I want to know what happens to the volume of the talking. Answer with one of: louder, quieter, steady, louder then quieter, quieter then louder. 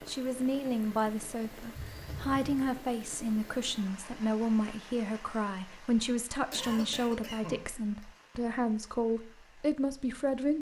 steady.